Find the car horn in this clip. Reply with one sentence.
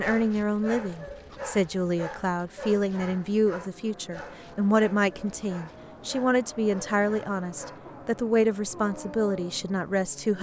The car horn can't be heard in this clip.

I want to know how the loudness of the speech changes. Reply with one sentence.
The volume of the speech stays about the same.